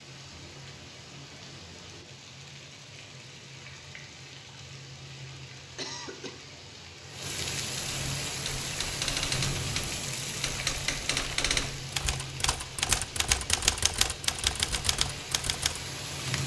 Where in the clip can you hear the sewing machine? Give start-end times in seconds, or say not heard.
not heard.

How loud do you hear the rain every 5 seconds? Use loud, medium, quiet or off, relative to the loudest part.
medium, loud, loud, loud.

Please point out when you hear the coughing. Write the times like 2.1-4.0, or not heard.
5.5-6.3.